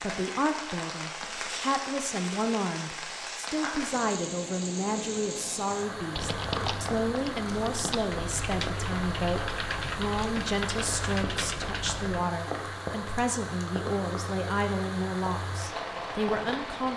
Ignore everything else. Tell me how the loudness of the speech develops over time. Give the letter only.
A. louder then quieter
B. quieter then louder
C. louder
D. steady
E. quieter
D.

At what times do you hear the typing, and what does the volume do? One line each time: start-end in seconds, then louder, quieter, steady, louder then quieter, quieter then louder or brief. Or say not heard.
6.2-12.2 steady.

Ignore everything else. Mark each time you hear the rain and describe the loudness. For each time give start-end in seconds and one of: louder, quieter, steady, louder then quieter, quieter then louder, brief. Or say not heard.
0.0-16.9 steady.